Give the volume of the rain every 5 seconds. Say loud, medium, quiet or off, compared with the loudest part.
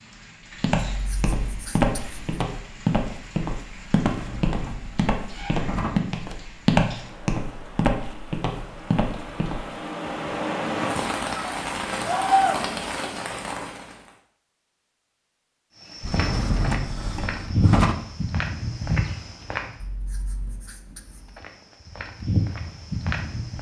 quiet, quiet, loud, off, off.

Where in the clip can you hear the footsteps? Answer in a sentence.
You can hear the footsteps from 0.6 to 9.7 s, from 15.9 to 19.8 s and from 21.4 to 23.5 s.